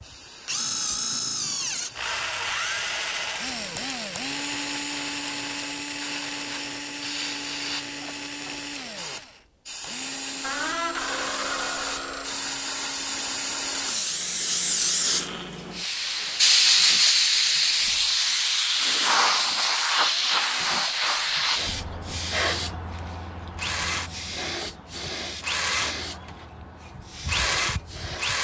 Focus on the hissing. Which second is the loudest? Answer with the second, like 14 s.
17 s.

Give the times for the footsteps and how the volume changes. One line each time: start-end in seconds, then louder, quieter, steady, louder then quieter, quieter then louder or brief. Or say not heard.
not heard.